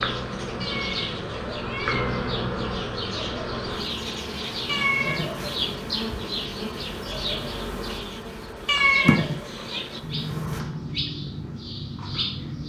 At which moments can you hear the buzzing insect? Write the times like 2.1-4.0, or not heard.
0.0-10.7.